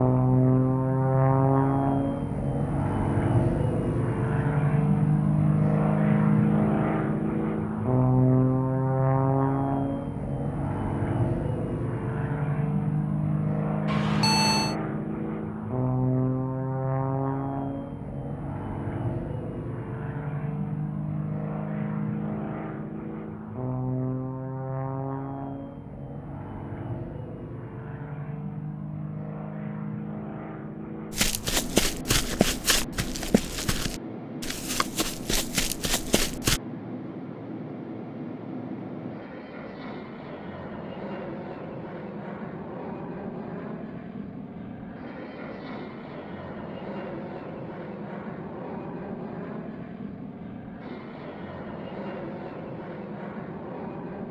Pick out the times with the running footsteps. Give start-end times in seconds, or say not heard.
31.1-36.6.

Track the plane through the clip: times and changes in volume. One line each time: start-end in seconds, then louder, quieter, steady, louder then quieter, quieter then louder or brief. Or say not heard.
0.0-54.2 quieter.